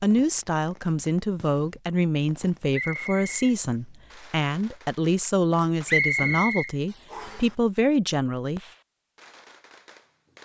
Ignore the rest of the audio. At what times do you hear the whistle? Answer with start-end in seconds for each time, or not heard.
2.7-3.4, 5.8-7.5.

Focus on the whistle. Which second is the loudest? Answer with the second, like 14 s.
6 s.